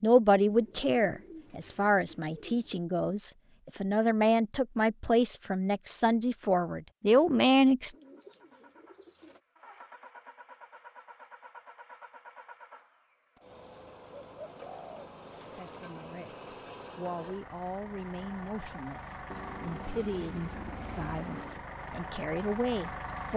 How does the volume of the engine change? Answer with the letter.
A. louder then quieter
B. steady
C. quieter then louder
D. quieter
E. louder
E.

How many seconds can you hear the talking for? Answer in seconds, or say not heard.
16 s.